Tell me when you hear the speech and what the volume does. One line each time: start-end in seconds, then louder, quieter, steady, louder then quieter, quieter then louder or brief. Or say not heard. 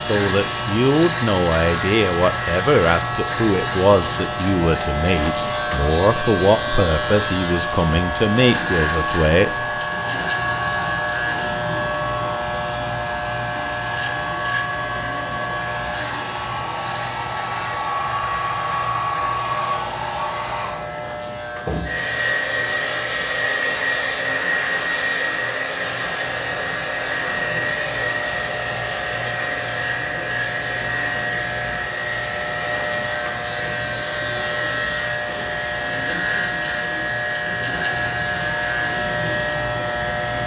0.0-9.5 steady.